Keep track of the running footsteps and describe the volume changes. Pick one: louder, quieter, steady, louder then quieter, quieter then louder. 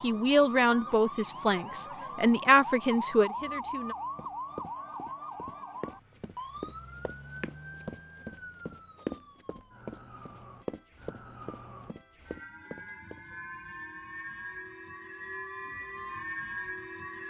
louder then quieter.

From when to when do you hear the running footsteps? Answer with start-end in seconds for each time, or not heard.
4.2-13.2.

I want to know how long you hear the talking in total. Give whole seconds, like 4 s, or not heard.
4 s.